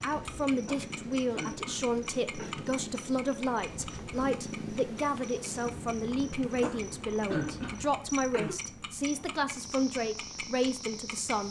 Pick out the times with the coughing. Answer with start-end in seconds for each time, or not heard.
0.7-2.6, 6.6-8.6.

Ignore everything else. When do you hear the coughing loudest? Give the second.
7 s.